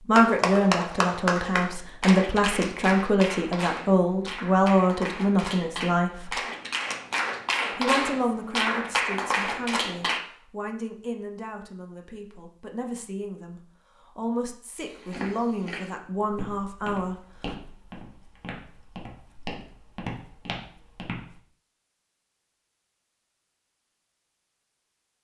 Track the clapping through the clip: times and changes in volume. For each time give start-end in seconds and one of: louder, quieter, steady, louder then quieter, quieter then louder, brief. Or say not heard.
0.1-10.2 quieter then louder.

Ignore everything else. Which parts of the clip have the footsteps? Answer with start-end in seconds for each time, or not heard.
14.8-21.4.